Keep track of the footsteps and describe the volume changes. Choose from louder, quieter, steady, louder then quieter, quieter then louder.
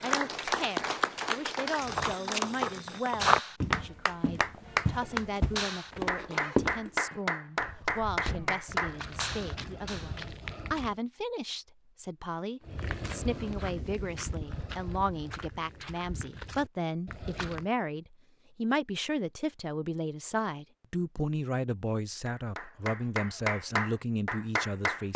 quieter.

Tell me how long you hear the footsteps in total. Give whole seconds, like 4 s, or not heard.
14 s.